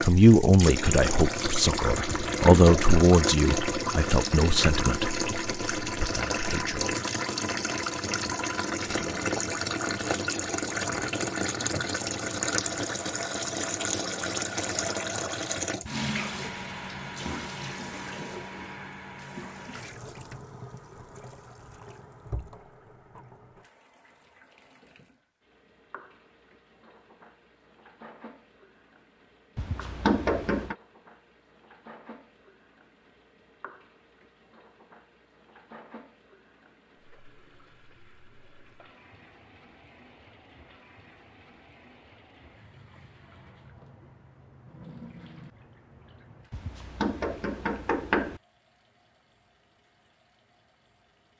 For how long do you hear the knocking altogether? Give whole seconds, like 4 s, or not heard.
4 s.